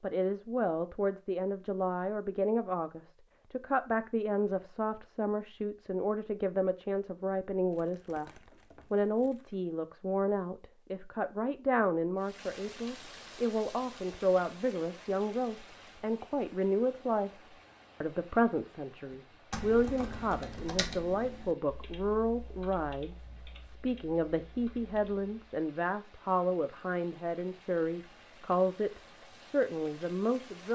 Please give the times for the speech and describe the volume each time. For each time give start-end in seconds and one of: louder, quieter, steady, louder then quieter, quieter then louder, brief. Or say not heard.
0.0-17.4 steady
18.0-30.7 steady.